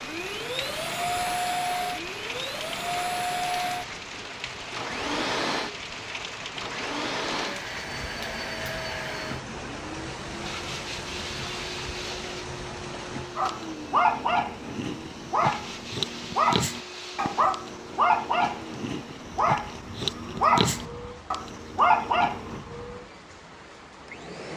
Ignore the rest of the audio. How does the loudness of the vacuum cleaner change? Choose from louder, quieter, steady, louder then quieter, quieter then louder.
quieter.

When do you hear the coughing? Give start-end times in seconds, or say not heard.
not heard.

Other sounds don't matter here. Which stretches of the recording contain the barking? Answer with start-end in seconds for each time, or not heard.
13.3-22.6.